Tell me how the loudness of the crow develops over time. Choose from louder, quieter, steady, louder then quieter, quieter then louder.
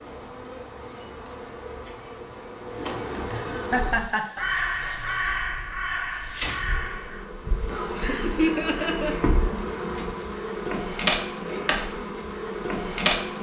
quieter.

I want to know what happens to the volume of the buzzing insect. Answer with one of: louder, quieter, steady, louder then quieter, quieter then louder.
louder.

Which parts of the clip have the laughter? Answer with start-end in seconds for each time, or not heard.
3.3-4.5, 8.0-9.2.